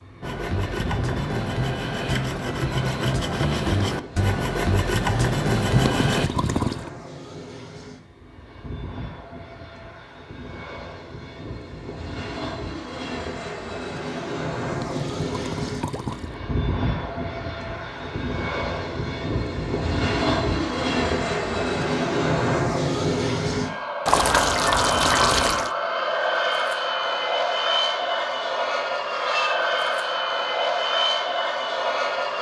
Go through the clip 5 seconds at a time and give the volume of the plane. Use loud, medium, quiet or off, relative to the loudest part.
quiet, quiet, medium, medium, loud, loud, loud.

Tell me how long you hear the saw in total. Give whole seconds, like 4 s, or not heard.
6 s.